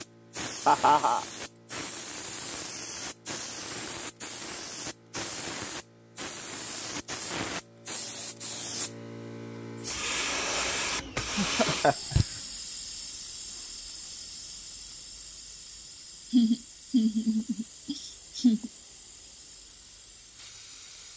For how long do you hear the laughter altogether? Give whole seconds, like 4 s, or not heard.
4 s.